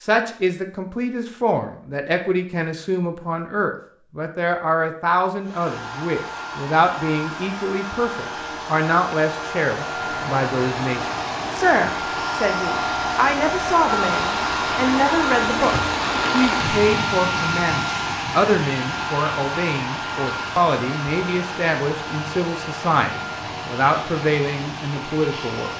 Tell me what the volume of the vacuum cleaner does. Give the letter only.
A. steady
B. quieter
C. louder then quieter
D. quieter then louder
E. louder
C.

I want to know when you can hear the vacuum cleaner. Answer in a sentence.
You can hear the vacuum cleaner from 5.4 to 25.7 s.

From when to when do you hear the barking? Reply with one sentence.
The barking can't be heard in this clip.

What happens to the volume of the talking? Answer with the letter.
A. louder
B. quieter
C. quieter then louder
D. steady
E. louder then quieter
D.